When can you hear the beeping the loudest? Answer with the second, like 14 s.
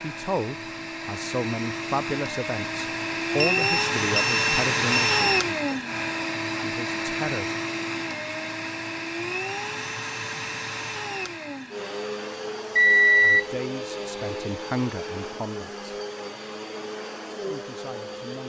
13 s.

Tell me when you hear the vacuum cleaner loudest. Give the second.
5 s.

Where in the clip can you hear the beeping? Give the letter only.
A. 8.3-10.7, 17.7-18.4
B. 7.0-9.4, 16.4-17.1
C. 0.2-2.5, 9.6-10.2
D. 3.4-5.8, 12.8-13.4
D.